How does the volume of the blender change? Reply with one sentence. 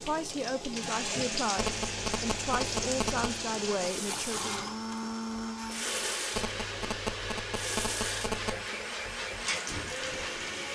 The loudness of the blender stays about the same.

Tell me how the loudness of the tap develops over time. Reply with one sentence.
The volume of the tap stays about the same.